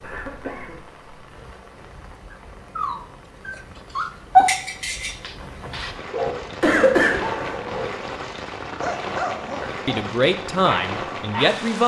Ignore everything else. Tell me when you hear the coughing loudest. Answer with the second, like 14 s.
7 s.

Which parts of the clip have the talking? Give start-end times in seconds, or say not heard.
9.6-11.8.